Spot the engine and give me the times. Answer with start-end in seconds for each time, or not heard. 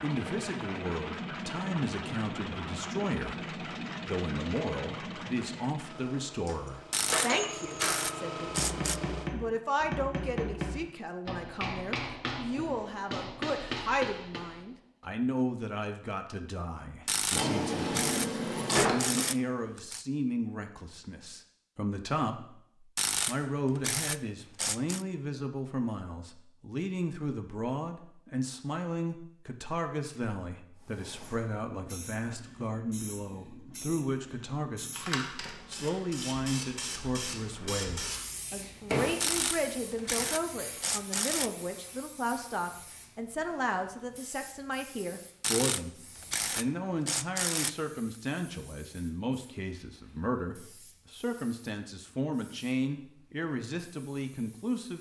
0.0-9.3.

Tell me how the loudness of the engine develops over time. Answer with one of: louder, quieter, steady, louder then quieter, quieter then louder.
quieter then louder.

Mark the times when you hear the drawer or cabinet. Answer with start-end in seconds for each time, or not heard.
17.4-19.2.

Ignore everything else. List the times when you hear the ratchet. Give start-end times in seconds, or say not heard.
6.9-9.0, 17.1-20.1, 22.9-25.1, 39.2-41.5, 45.4-47.8.